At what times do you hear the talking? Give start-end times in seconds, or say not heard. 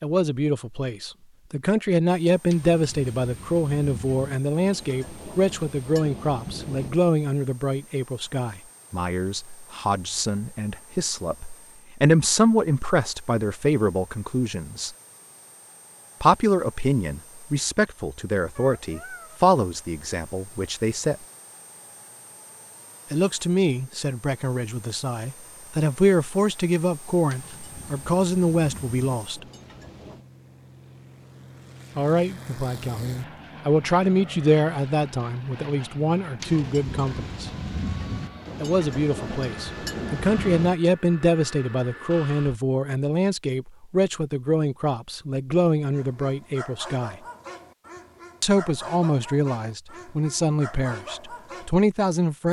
0.0-14.9, 16.2-21.1, 23.1-29.4, 31.9-37.5, 38.6-47.1, 48.4-52.4.